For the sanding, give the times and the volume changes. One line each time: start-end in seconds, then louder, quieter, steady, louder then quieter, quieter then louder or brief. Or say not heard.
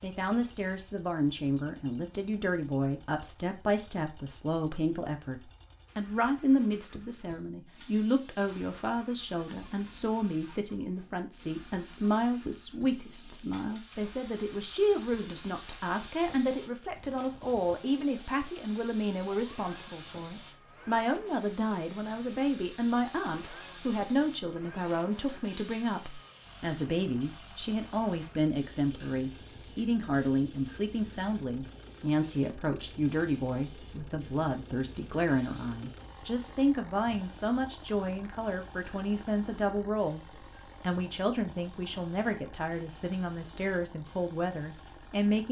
not heard.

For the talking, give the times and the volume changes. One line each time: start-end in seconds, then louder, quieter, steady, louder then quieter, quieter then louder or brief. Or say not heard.
0.0-45.4 steady.